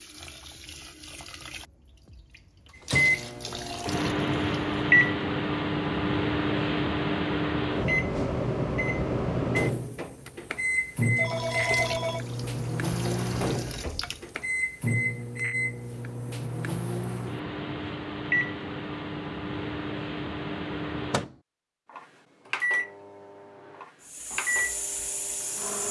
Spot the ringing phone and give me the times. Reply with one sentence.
The ringing phone can be heard from 11.2 to 12.2 s.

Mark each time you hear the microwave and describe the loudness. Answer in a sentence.
You can hear the microwave from 2.9 to 25.8 s, getting quieter.